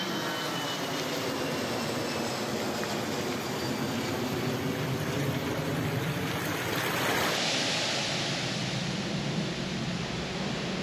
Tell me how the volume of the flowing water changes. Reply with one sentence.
The loudness of the flowing water goes up, then down.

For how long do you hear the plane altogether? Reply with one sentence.
The plane can be heard for 11 seconds in total.